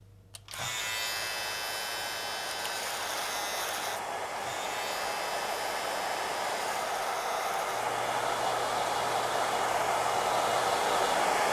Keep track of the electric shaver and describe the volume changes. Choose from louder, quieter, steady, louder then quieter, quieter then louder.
quieter.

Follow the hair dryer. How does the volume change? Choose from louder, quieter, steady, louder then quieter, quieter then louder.
louder.